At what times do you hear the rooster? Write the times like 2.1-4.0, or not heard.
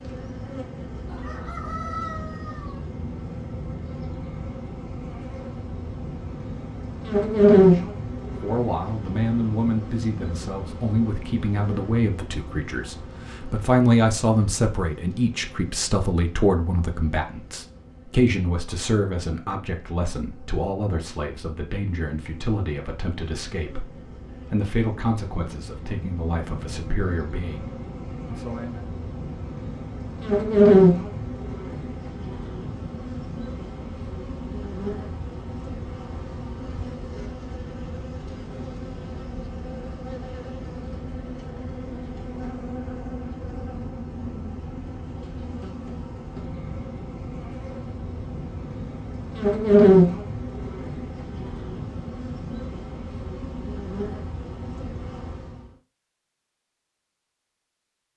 1.1-2.8.